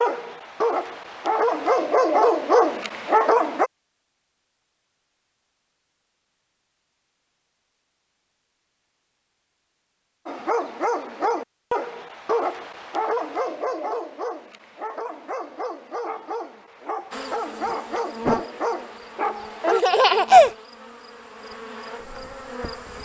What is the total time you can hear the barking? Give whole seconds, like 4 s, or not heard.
13 s.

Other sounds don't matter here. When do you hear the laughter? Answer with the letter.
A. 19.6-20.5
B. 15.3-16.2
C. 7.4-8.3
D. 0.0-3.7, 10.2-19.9
A.